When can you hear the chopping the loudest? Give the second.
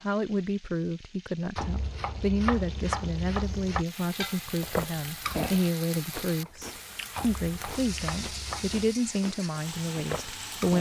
3 s.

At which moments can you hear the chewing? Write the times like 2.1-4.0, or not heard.
4.4-10.7.